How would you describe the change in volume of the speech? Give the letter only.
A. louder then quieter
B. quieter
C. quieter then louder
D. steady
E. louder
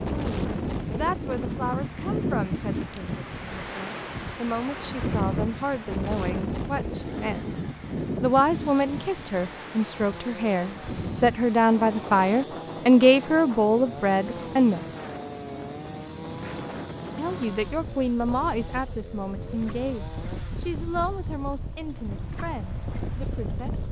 A.